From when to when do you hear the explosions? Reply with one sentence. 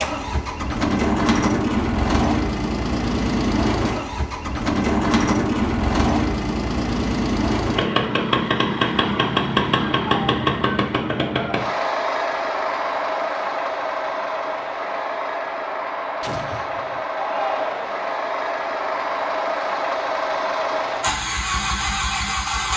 You can hear the explosions from 16.2 to 17.1 s.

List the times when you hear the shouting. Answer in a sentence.
You can hear the shouting from 17.1 to 18.0 s.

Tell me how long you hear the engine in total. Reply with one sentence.
You can hear the engine for 23 seconds altogether.